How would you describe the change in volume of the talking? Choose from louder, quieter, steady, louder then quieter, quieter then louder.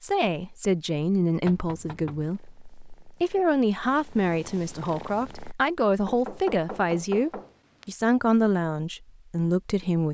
steady.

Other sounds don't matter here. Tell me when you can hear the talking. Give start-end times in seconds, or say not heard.
0.0-10.0.